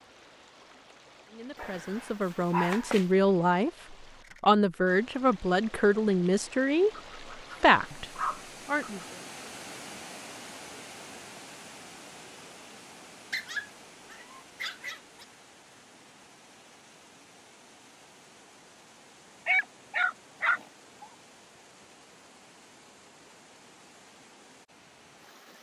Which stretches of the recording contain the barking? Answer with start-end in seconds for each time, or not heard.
1.6-3.0, 6.9-9.1, 13.3-15.2, 19.4-21.1.